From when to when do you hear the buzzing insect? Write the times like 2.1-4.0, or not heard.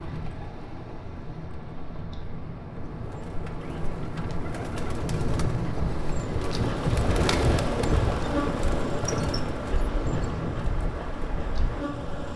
6.5-12.3.